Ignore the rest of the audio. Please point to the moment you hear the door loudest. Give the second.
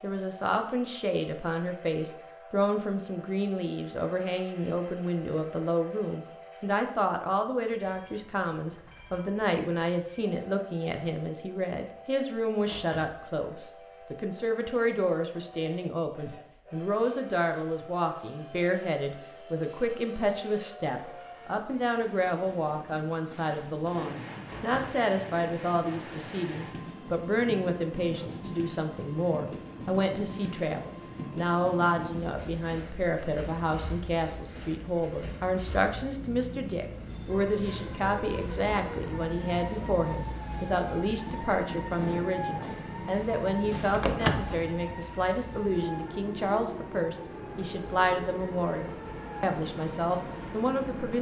44 s.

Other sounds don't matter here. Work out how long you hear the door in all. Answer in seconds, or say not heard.
2 s.